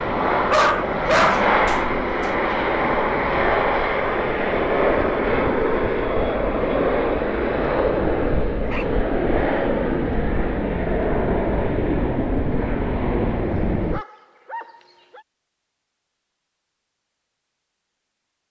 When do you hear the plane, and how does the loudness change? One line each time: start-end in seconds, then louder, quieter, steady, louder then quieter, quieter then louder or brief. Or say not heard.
0.0-14.1 steady.